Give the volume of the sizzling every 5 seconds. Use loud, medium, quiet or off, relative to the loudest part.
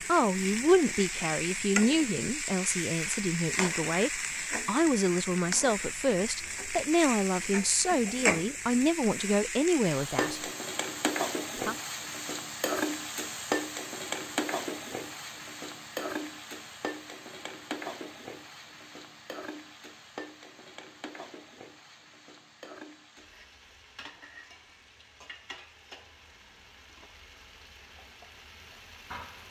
loud, loud, loud, medium, quiet, quiet.